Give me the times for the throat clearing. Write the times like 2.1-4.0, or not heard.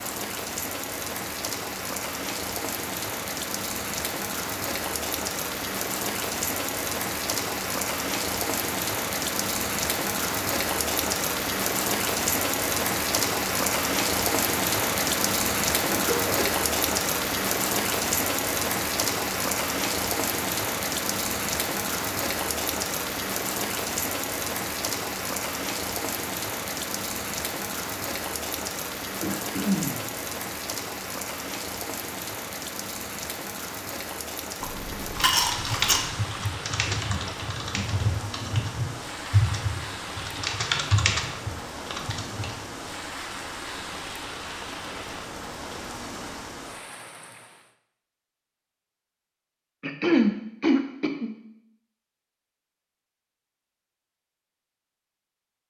15.8-16.5, 29.2-30.1, 49.8-51.3.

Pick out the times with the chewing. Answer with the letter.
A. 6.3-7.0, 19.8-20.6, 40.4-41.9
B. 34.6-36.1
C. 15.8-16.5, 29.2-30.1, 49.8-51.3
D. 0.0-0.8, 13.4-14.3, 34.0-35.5
B.